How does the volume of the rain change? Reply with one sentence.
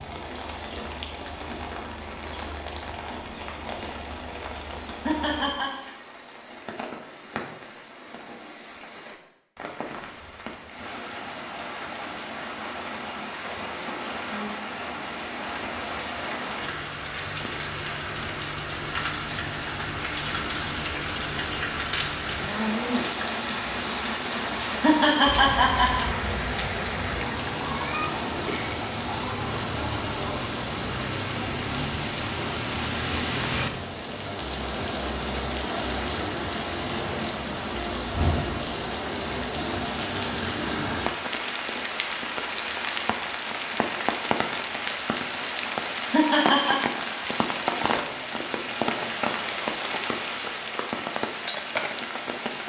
The volume of the rain goes up.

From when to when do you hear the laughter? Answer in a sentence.
You can hear the laughter from 5.0 to 5.7 s, from 24.8 to 26.1 s and from 46.1 to 46.8 s.